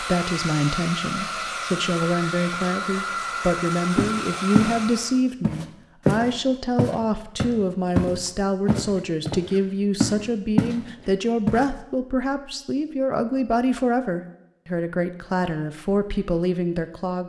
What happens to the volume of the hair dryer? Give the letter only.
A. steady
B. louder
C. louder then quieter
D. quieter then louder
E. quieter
A.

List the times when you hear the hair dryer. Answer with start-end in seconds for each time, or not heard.
0.0-5.2.